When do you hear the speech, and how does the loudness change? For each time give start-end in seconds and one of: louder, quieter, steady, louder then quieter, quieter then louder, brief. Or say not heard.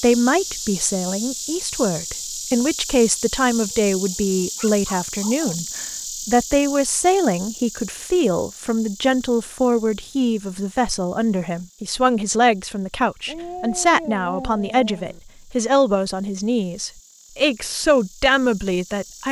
0.0-19.2 steady.